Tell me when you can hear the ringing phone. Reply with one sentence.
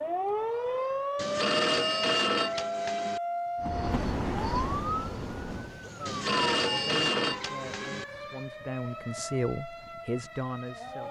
The ringing phone can be heard from 1.1 to 3.2 s and from 6.0 to 8.1 s.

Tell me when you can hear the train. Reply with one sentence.
The train can be heard from 3.5 to 5.8 s.